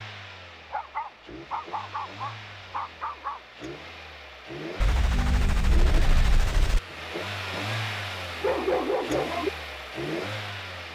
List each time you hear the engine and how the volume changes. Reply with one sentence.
The engine can be heard from 0.0 to 10.9 s, getting louder.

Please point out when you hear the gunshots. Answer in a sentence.
You can hear the gunshots from 4.8 to 6.8 s.